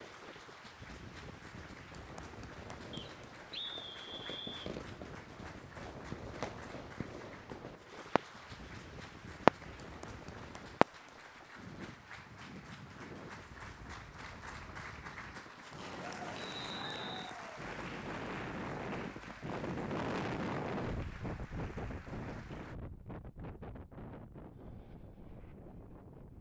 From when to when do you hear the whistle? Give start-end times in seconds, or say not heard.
2.9-4.7, 16.4-17.4.